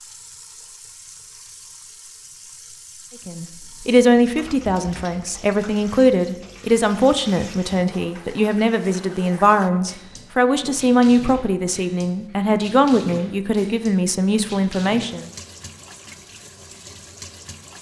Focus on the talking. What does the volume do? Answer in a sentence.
The volume of the talking stays about the same.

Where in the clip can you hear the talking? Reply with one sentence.
The talking can be heard from 3.2 to 15.3 s.